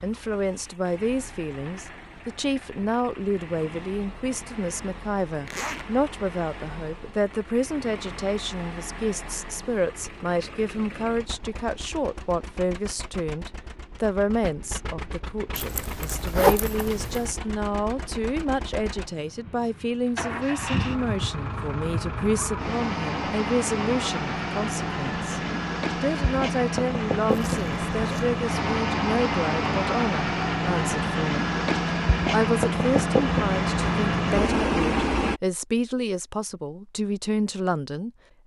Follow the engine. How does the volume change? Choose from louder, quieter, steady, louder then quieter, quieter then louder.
louder.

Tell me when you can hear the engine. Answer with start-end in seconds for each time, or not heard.
0.0-35.4.